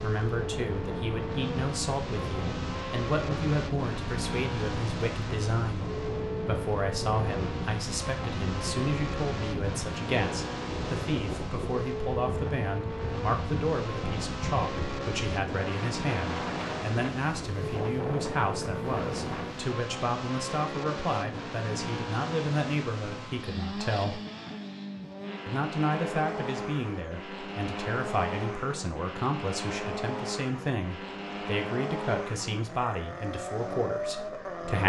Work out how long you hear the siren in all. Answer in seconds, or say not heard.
not heard.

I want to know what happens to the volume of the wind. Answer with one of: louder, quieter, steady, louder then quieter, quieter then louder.
steady.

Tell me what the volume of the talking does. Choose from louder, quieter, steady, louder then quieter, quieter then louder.
steady.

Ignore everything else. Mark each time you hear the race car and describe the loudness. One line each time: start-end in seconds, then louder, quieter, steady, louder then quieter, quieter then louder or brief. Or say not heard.
0.0-34.8 steady.